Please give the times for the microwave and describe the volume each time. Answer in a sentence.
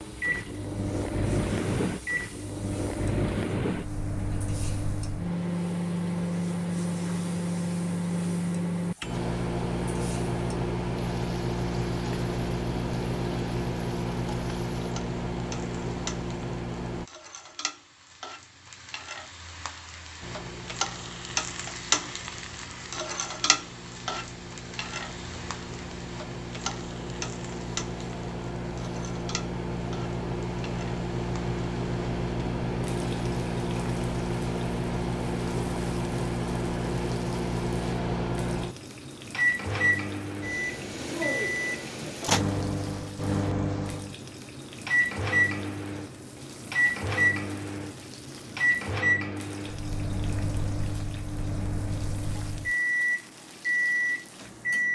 The microwave can be heard from 0.0 to 17.1 s, at a steady volume; and from 20.2 to 54.8 s, getting louder.